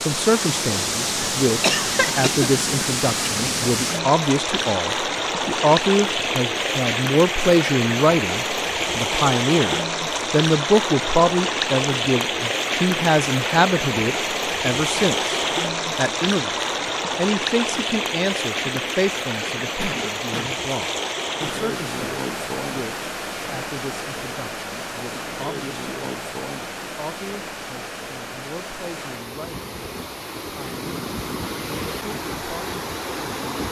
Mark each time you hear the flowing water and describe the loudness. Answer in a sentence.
The flowing water can be heard from 0.0 to 33.6 s, getting quieter.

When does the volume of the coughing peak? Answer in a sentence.
The volume of the coughing peaks at 2 seconds.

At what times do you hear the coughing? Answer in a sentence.
You can hear the coughing from 1.6 to 2.5 s and from 19.4 to 20.6 s.